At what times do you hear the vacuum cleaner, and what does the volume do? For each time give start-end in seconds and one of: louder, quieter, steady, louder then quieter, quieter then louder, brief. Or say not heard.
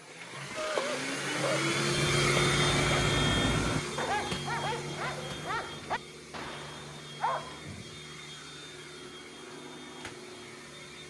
0.0-11.0 quieter.